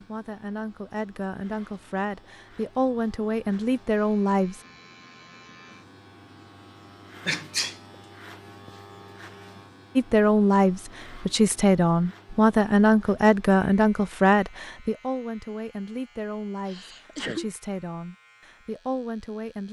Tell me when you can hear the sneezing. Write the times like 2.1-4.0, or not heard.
7.2-7.8, 16.6-17.5.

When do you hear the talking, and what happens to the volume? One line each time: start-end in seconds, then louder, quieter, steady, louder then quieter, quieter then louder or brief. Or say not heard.
0.0-4.6 louder
9.9-19.6 quieter.